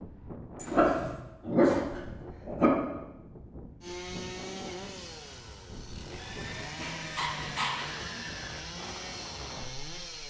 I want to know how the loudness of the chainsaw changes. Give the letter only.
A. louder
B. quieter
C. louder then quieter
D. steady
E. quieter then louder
E.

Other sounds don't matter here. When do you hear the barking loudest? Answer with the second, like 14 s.
2 s.